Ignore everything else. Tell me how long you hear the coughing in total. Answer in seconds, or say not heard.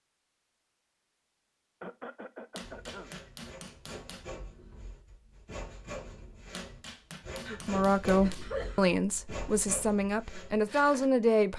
3 s.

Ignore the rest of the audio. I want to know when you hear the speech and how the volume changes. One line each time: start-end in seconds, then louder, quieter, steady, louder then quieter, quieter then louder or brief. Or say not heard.
7.5-11.5 quieter then louder.